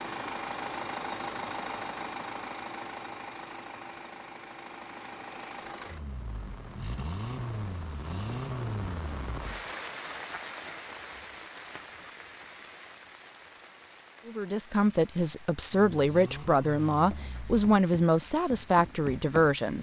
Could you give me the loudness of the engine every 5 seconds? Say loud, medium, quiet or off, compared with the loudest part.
loud, loud, off, medium.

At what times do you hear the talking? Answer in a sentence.
You can hear the talking from 14.2 to 19.7 s.